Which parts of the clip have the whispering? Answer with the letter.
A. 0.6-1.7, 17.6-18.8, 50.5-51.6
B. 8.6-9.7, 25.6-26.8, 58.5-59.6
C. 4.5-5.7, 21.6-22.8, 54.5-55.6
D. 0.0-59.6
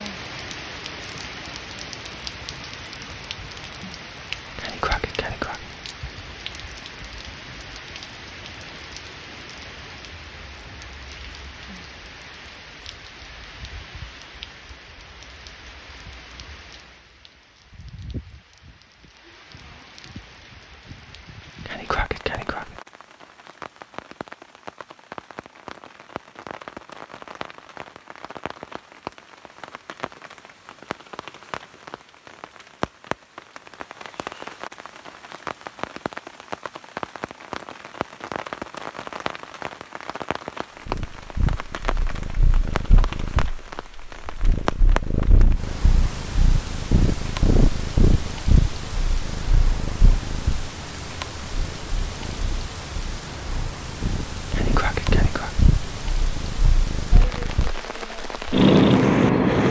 C.